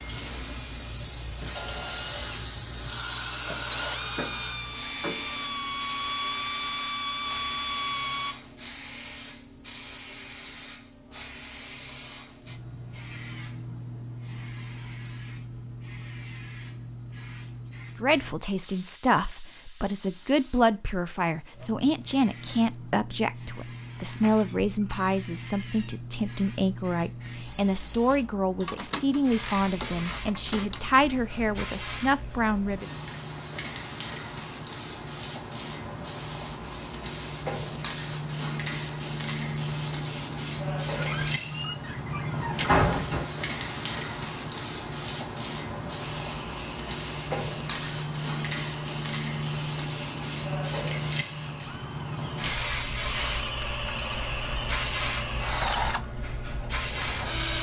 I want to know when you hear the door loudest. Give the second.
43 s.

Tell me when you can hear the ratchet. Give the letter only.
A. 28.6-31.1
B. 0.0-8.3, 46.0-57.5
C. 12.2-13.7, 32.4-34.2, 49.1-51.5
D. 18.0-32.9
A.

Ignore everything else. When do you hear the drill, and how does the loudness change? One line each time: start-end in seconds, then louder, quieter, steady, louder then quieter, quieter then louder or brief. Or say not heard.
0.0-8.3 louder
46.0-57.5 louder.